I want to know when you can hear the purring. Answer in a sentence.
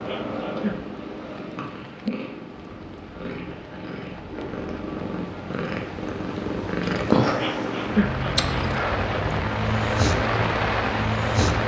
The purring can be heard from 0.0 to 11.6 s.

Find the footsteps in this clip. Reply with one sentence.
You can't hear the footsteps here.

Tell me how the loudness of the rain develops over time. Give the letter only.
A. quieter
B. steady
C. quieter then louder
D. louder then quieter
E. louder
E.